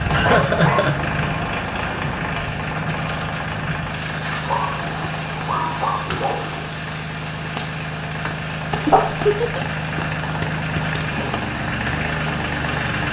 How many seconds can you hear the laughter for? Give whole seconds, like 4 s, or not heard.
2 s.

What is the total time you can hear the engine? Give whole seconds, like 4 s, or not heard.
13 s.